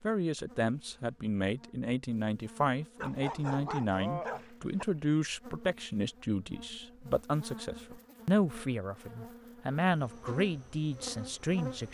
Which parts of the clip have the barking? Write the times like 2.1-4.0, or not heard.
3.0-4.8.